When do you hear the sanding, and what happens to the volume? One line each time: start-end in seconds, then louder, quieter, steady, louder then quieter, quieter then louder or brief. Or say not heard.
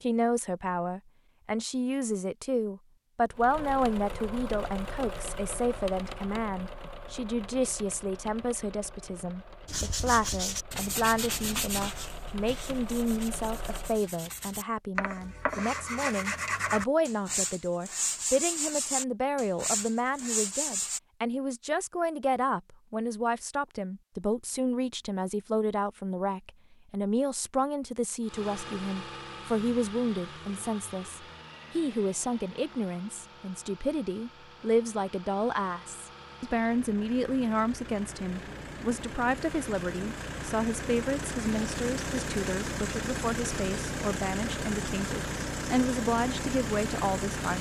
9.7-21.0 quieter then louder.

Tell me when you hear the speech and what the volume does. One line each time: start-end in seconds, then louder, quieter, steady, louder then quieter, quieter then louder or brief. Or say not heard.
0.0-47.5 steady.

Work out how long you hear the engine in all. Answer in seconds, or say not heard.
30 s.